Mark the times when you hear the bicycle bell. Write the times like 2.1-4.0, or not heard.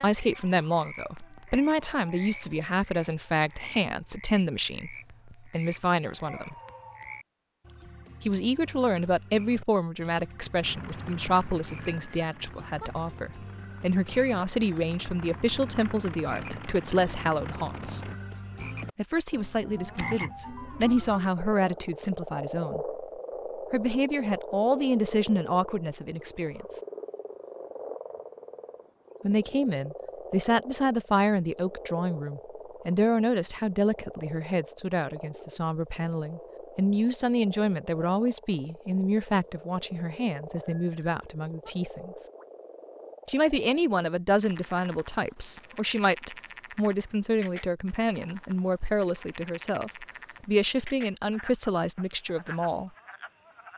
11.8-12.9, 40.6-41.7.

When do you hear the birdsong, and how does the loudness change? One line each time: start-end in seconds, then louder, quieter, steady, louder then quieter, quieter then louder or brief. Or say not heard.
not heard.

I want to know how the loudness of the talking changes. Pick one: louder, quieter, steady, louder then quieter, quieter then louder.
steady.